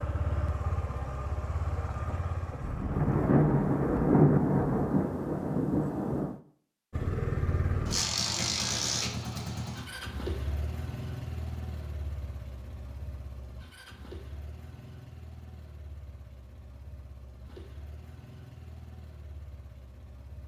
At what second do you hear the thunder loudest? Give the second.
4 s.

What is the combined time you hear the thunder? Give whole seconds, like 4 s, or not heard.
4 s.